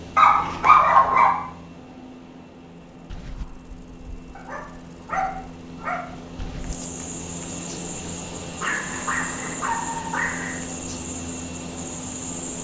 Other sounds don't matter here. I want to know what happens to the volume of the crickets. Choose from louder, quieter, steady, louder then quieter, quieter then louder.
louder.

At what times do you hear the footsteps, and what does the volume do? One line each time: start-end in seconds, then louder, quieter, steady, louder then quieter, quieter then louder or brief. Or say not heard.
not heard.